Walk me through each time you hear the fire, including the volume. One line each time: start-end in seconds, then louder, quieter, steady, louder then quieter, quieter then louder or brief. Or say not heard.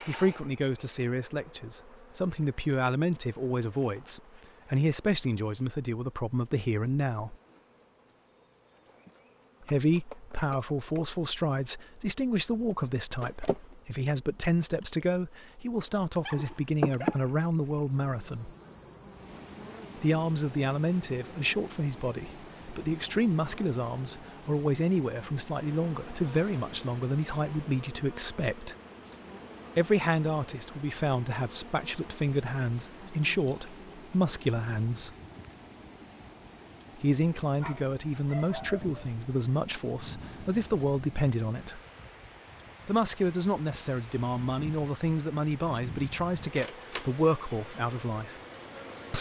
not heard.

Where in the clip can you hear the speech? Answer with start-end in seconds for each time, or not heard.
0.1-7.3, 9.6-18.5, 19.9-28.8, 29.8-35.1, 37.0-41.8, 42.9-48.4.